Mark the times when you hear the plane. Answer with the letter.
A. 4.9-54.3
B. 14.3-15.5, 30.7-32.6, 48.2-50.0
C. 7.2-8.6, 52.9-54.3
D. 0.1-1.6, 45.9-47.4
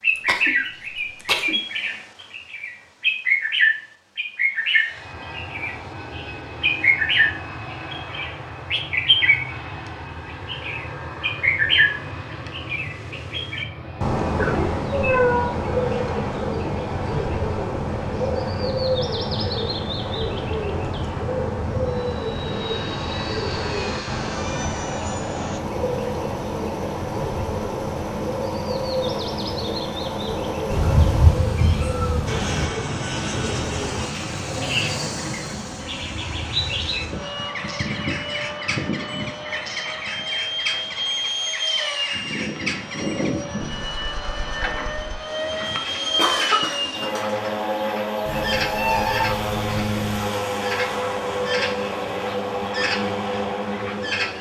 A.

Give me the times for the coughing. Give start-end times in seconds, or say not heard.
0.1-1.6, 45.9-47.4.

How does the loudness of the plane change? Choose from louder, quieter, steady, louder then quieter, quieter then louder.
louder.